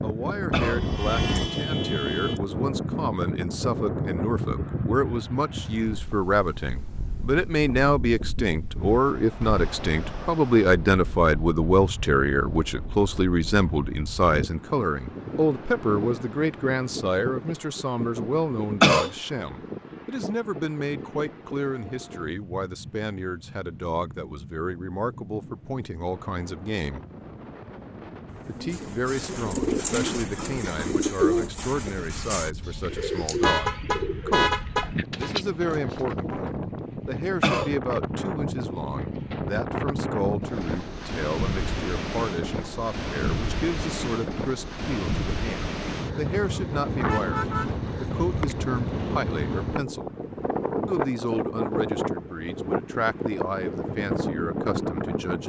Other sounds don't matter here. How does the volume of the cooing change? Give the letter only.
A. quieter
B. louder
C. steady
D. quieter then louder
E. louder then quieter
A.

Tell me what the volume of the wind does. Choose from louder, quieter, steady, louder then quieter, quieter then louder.
quieter then louder.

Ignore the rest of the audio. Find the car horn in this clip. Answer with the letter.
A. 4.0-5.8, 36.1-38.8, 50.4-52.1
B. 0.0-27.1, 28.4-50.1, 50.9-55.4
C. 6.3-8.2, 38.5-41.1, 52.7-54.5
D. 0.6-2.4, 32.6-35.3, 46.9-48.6
D.